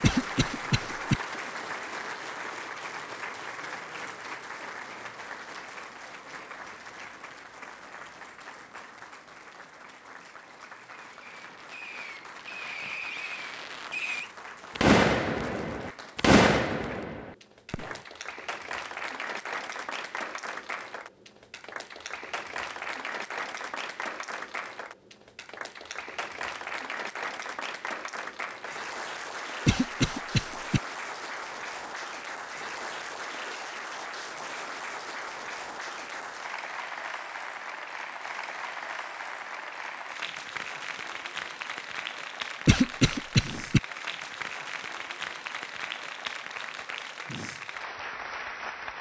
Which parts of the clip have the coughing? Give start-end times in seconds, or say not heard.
0.0-1.2, 29.6-30.8, 42.6-43.8.